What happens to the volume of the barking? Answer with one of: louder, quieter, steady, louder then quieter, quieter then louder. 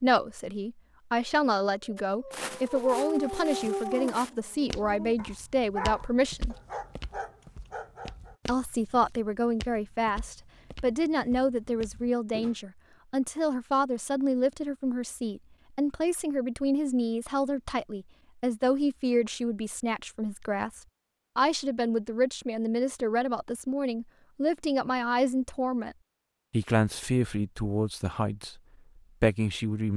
quieter.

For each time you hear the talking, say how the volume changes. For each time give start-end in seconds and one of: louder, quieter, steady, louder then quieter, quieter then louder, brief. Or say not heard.
0.0-6.5 steady
8.4-28.6 steady
29.2-29.9 brief.